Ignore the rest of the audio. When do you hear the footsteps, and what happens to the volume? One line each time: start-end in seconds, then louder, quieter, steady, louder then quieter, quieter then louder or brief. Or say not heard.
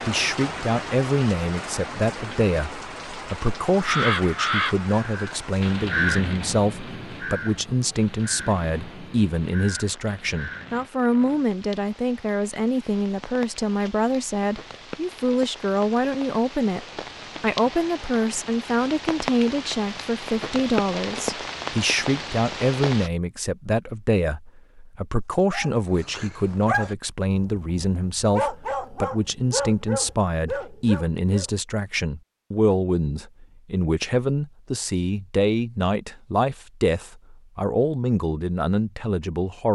not heard.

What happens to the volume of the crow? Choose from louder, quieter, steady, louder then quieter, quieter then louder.
quieter.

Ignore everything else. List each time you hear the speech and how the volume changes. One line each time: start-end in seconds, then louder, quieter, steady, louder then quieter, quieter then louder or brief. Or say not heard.
0.1-39.6 steady.